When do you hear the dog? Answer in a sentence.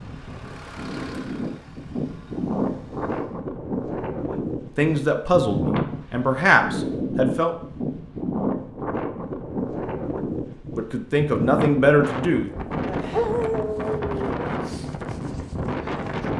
You can hear the dog from 13.1 to 14.3 s.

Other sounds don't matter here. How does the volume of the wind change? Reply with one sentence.
The loudness of the wind stays about the same.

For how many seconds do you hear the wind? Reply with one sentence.
You can hear the wind for 16 seconds altogether.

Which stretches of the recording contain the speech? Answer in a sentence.
The speech can be heard from 4.8 to 7.5 s and from 10.8 to 12.5 s.